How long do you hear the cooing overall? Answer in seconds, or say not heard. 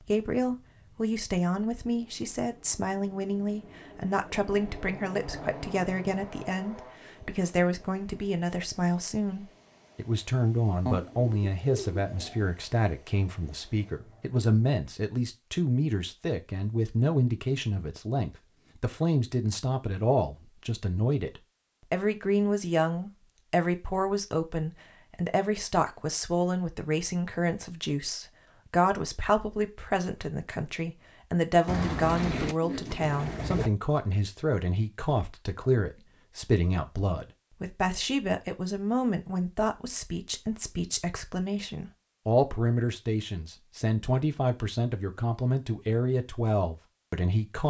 4 s.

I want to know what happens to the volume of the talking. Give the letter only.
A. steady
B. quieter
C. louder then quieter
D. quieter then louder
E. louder
A.